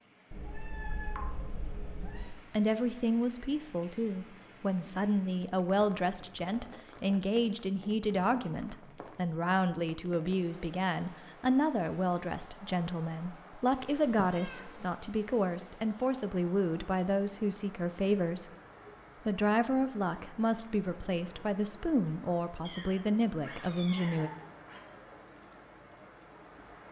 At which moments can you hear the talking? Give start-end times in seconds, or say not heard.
2.0-18.5, 19.2-24.3.